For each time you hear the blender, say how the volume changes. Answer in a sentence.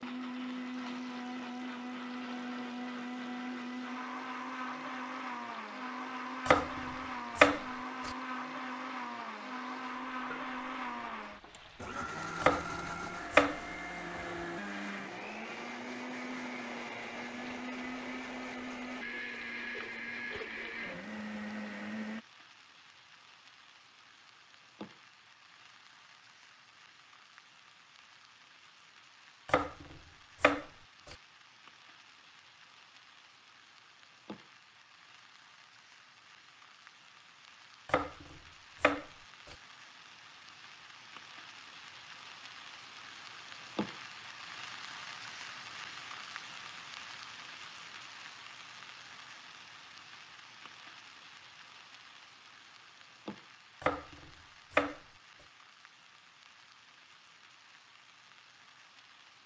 You can hear the blender from 0.0 to 22.2 s, at a steady volume.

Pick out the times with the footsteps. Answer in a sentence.
You can't hear the footsteps here.